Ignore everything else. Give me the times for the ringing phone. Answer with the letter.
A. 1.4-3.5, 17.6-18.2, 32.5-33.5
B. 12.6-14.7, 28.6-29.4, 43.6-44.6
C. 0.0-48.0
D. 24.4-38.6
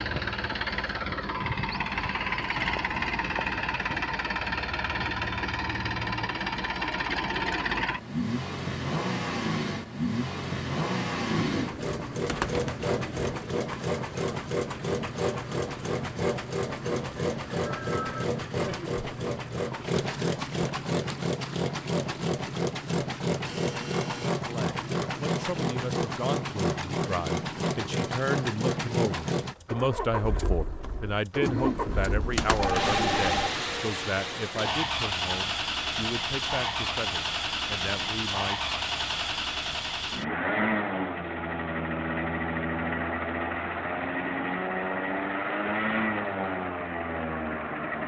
A.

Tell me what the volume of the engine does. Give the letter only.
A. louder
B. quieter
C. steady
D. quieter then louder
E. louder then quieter
C.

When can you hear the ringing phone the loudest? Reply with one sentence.
The volume of the ringing phone peaks at 33 seconds.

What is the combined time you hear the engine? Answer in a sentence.
You can hear the engine for 48 seconds altogether.